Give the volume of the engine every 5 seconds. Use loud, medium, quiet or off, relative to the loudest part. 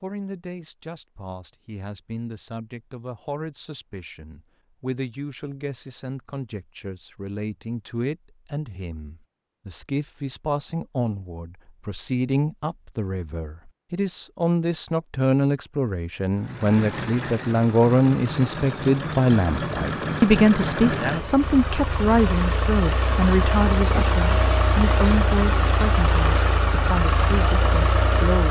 off, off, off, medium, loud, loud.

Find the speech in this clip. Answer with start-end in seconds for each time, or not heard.
0.0-28.4.